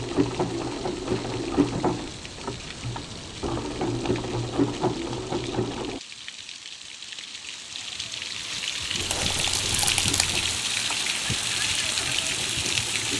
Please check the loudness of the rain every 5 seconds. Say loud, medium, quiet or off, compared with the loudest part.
quiet, medium, loud.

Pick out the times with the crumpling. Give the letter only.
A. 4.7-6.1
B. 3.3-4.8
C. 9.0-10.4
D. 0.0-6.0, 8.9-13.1
C.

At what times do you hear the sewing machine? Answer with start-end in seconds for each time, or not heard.
0.0-6.0, 8.9-13.1.